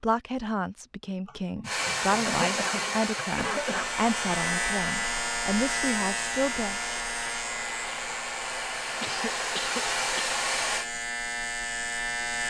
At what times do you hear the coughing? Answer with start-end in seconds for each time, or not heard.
1.2-3.9, 9.0-10.4.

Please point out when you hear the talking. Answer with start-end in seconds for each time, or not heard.
0.0-6.8.